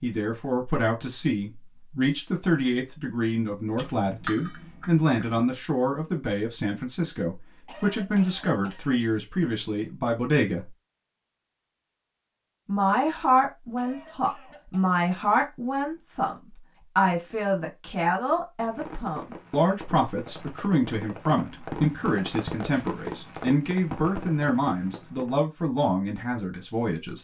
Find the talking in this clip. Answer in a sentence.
The talking can be heard from 0.0 to 10.7 s, from 12.7 to 16.4 s and from 16.9 to 27.1 s.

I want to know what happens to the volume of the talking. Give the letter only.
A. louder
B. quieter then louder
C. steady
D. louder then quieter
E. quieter
C.